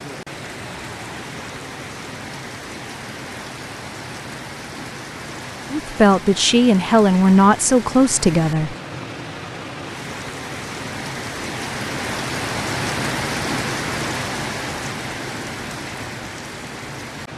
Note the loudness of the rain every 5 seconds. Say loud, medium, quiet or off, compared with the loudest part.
medium, medium, loud, medium.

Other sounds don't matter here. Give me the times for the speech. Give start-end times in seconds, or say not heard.
5.7-8.8.